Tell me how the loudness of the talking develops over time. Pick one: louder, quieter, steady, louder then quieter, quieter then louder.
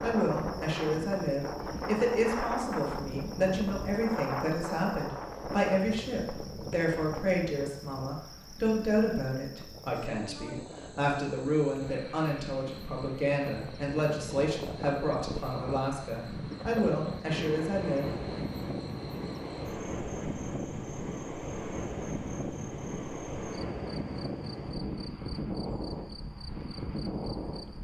steady.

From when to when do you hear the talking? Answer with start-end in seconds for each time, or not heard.
0.0-18.1.